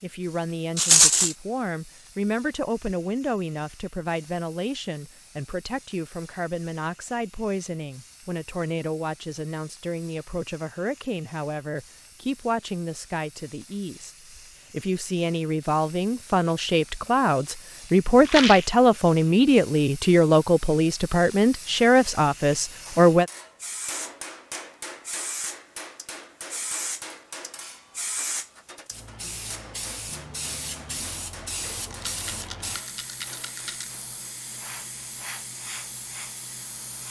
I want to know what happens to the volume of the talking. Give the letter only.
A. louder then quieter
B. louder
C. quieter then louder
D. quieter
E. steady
B.